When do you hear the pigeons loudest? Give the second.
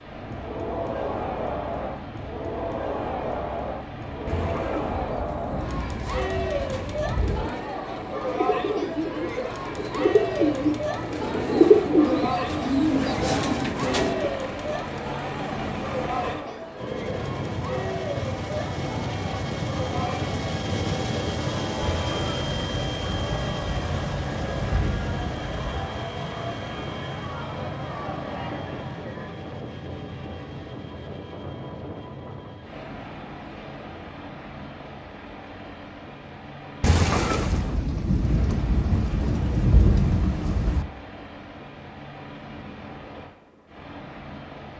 12 s.